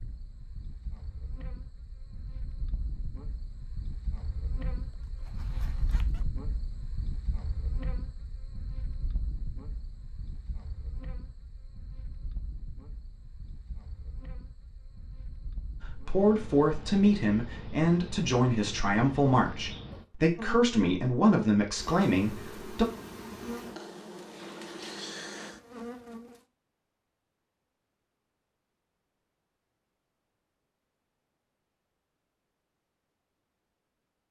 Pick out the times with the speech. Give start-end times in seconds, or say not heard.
15.8-22.9.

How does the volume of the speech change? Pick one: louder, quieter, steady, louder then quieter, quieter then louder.
steady.